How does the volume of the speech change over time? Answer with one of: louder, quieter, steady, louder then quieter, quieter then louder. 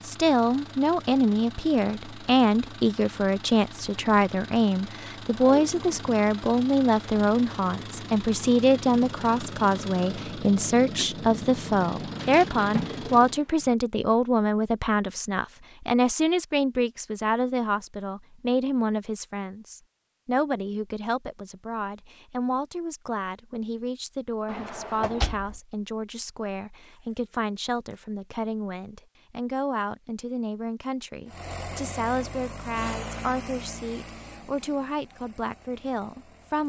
quieter.